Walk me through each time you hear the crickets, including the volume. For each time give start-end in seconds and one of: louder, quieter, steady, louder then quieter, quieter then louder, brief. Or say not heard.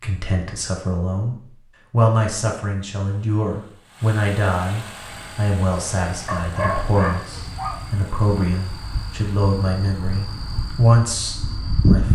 4.9-12.1 louder.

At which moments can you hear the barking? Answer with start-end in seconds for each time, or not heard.
6.2-7.8.